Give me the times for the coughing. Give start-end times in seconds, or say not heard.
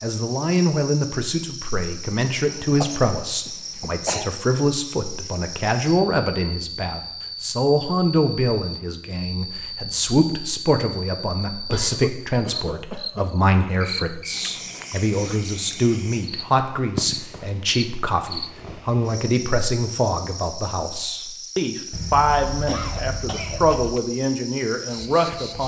2.4-4.3, 11.7-13.2, 21.9-23.9.